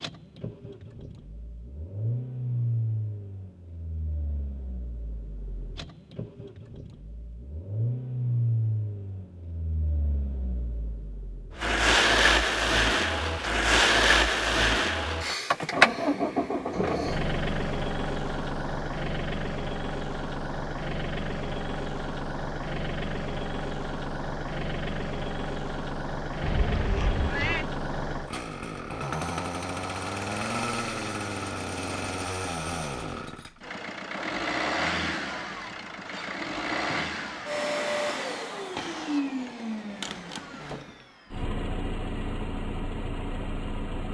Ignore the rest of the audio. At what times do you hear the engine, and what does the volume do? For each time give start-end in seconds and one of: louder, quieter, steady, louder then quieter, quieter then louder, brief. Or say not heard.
0.0-44.1 louder then quieter.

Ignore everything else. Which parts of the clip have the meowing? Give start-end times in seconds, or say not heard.
26.4-27.6.